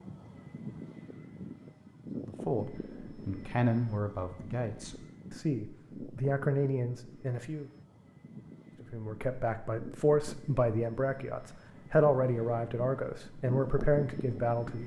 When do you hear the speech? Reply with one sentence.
You can hear the speech from 2.2 to 7.7 s and from 8.8 to 14.8 s.